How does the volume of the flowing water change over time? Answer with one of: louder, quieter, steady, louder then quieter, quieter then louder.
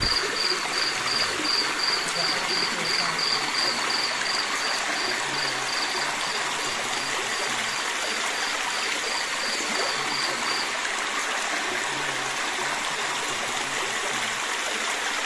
steady.